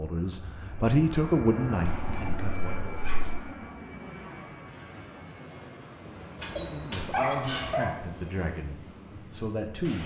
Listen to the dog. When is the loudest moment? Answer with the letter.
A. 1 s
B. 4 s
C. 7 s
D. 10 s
C.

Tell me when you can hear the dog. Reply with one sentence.
The dog can be heard from 1.9 to 3.5 s and from 6.3 to 8.0 s.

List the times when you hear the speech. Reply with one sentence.
You can hear the speech from 0.0 to 2.9 s and from 6.5 to 10.0 s.